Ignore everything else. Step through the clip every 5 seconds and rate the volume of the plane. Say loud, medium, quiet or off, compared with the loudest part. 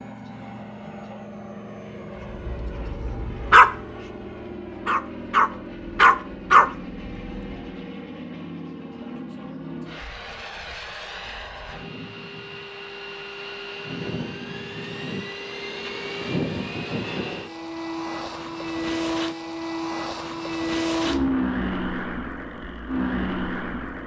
medium, medium, medium, loud, loud.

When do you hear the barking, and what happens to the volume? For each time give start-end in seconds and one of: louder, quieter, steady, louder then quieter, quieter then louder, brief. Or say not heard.
2.6-7.4 quieter then louder.